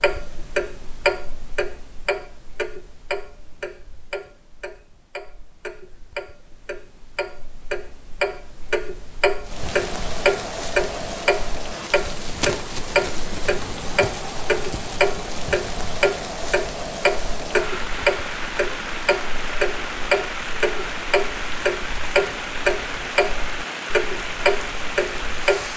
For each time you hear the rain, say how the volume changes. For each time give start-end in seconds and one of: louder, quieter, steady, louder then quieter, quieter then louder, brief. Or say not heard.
9.4-25.7 steady.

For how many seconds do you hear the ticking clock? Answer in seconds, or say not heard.
26 s.